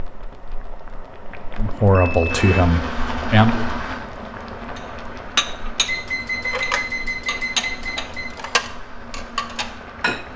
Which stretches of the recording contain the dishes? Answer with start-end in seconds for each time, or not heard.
4.8-10.2.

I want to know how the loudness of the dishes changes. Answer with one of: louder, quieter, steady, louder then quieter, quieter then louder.
quieter.